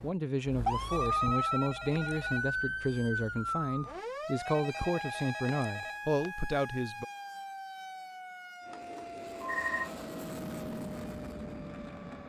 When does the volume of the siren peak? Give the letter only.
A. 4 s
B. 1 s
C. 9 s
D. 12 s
B.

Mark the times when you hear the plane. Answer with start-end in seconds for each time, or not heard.
8.6-12.2.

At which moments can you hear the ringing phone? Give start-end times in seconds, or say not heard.
0.9-2.5, 4.5-6.3, 8.7-9.9.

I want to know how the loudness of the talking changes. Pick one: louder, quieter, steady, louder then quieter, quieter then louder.
steady.